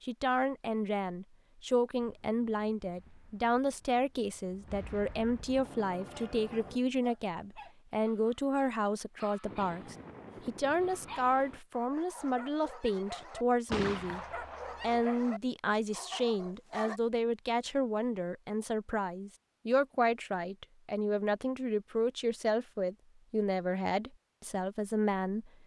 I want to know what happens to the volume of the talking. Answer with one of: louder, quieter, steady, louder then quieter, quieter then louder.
steady.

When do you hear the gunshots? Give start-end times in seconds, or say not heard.
13.7-15.1.